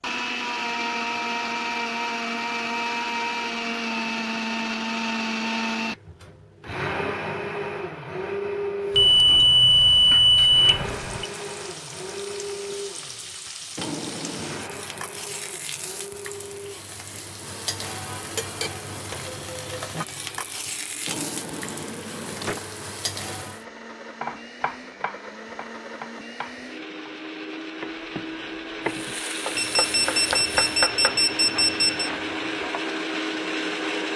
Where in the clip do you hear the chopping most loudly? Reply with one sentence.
The loudest moment of the chopping is at 31 seconds.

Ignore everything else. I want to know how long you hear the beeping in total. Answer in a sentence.
You can hear the beeping for 5 seconds altogether.